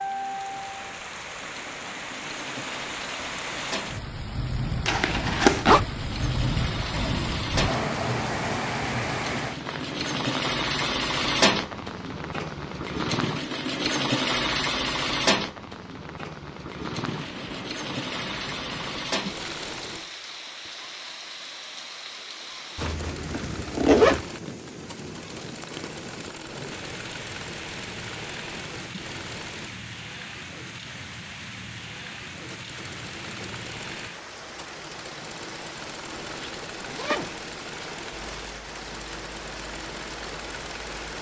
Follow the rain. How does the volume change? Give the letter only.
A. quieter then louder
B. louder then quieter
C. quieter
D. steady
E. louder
C.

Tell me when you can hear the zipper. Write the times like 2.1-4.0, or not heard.
4.8-5.8, 22.8-24.2, 36.1-37.4.